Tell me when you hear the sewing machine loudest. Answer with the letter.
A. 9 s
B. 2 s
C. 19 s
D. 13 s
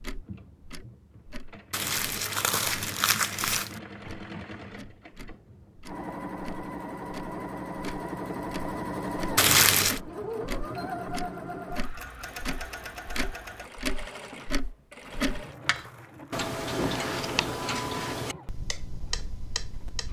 A.